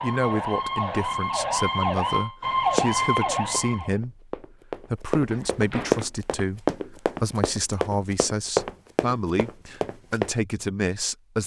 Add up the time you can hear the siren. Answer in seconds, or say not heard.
4 s.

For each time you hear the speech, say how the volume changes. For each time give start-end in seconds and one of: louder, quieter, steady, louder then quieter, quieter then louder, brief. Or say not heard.
0.0-11.4 steady.